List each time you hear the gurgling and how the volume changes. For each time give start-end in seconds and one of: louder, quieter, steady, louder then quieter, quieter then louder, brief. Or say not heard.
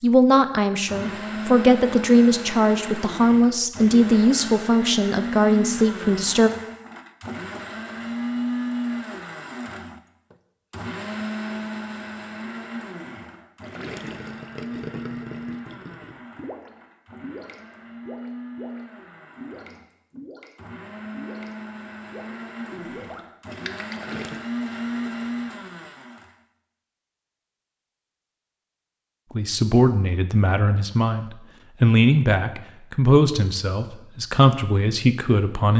13.6-24.4 steady.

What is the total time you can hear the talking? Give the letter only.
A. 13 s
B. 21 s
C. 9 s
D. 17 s
A.